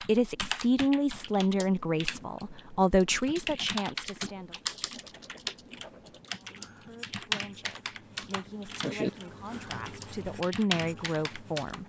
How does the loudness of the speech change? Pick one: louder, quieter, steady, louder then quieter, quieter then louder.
quieter then louder.